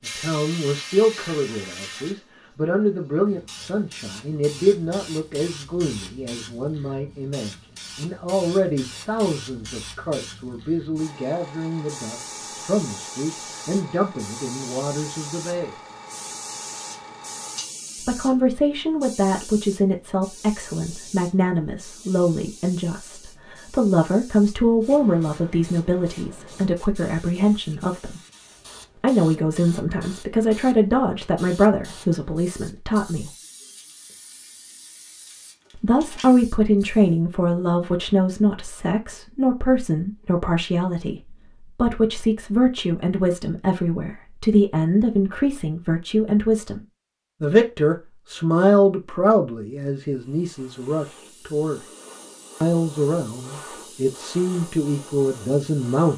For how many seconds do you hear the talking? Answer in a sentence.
The talking can be heard for 49 seconds in total.